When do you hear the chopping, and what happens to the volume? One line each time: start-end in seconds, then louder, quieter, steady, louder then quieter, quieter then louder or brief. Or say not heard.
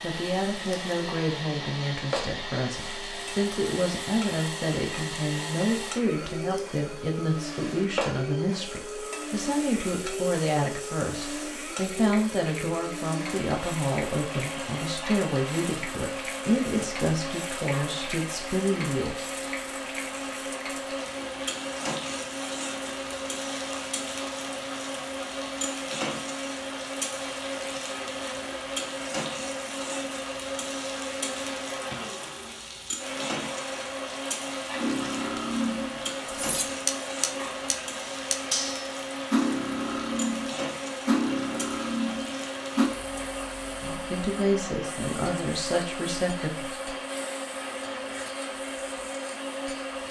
not heard.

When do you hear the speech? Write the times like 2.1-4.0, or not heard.
0.0-19.2, 43.8-46.8.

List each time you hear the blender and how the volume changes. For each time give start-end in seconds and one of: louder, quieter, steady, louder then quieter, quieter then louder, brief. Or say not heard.
0.0-50.0 steady.